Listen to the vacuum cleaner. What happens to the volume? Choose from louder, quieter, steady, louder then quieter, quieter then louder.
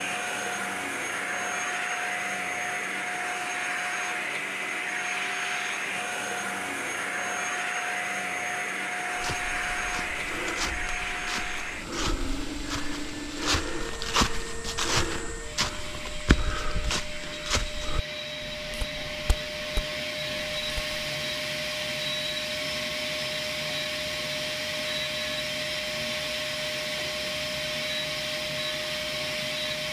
quieter then louder.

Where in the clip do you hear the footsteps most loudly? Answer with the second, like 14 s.
14 s.